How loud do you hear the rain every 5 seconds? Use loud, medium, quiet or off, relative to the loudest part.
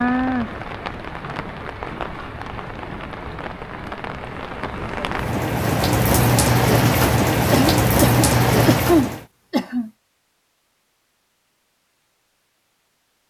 medium, loud, off.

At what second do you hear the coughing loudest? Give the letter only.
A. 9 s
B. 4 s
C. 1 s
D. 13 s
A.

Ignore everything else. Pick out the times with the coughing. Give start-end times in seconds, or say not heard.
7.5-9.9.